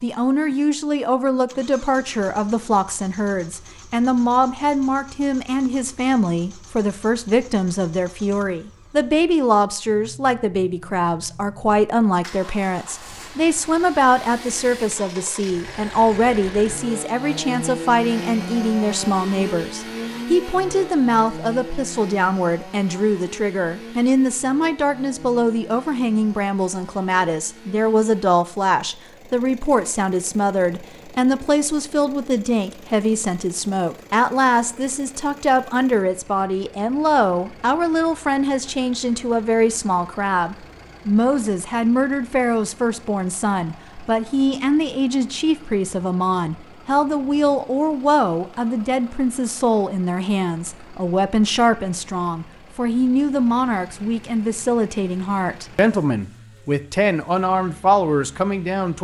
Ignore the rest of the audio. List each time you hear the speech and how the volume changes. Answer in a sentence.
The speech can be heard from 0.0 to 58.9 s, at a steady volume.